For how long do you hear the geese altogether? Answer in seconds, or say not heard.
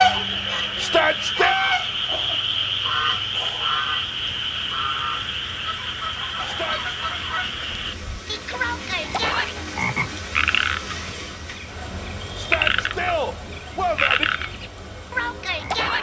8 s.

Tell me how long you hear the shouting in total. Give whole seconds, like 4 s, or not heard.
3 s.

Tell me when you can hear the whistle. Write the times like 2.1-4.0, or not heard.
not heard.